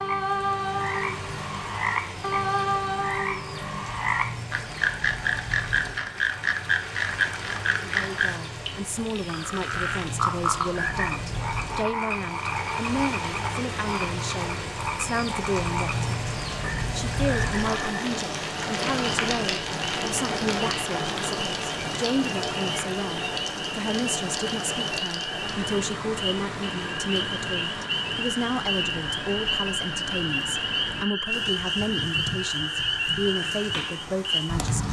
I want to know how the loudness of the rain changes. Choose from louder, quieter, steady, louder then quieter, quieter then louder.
louder then quieter.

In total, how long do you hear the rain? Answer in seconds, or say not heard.
35 s.